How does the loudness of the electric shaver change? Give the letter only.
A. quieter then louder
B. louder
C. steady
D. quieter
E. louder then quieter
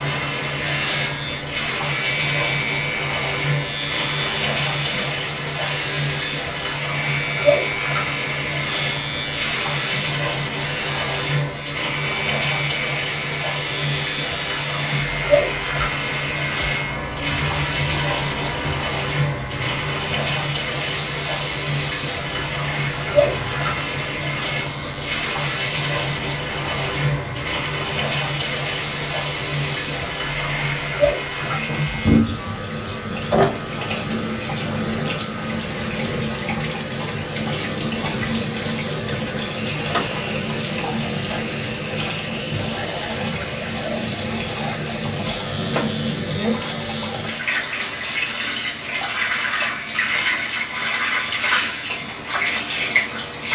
D.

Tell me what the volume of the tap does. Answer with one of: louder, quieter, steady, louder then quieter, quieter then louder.
steady.